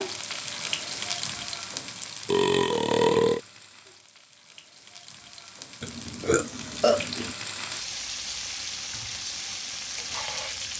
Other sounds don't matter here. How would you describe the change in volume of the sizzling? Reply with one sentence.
The volume of the sizzling goes down, then up.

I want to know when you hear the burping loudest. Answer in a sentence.
The volume of the burping peaks at 3 seconds.